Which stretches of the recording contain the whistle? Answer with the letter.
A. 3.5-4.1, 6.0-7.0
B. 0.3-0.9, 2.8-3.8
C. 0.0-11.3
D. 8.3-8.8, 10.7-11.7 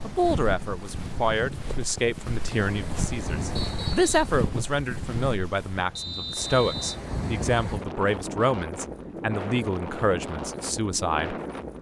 A.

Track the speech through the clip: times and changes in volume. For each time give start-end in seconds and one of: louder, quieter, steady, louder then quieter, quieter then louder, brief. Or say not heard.
0.0-11.3 steady.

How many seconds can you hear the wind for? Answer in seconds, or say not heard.
12 s.